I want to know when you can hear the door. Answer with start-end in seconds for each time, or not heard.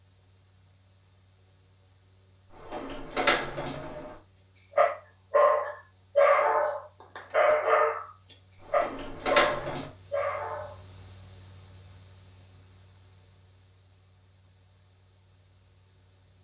2.5-4.2, 8.6-9.9.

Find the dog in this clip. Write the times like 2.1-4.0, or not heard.
4.8-8.1, 8.7-10.8.